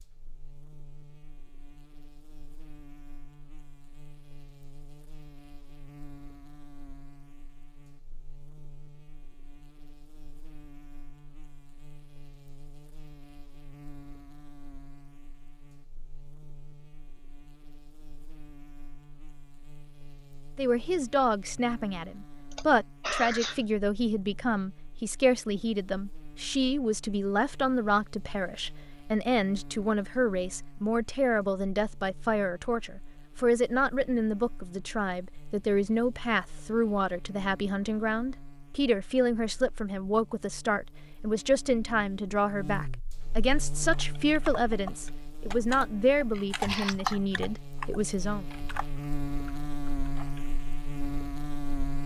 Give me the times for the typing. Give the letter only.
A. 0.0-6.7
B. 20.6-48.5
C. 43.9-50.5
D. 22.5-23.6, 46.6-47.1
C.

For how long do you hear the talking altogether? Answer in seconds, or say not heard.
28 s.